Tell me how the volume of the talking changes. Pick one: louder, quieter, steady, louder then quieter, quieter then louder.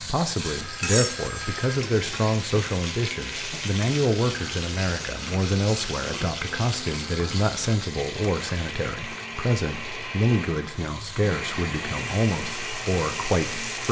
steady.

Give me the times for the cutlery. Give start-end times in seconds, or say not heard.
0.8-1.2.